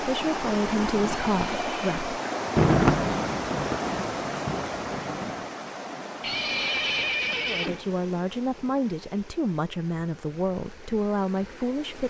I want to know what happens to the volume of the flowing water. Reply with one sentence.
The loudness of the flowing water goes down.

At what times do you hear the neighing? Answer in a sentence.
The neighing can be heard from 1.2 to 2.0 s and from 6.2 to 7.9 s.